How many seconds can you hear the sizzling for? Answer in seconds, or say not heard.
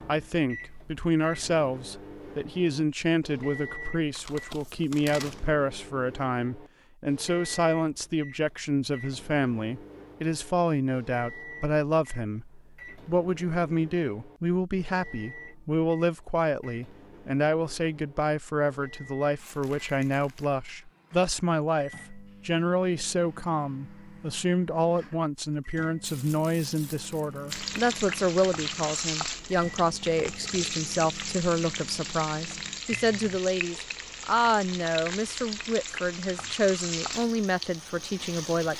11 s.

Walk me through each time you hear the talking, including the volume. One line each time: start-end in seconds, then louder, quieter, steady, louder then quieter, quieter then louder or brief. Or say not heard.
0.1-38.7 steady.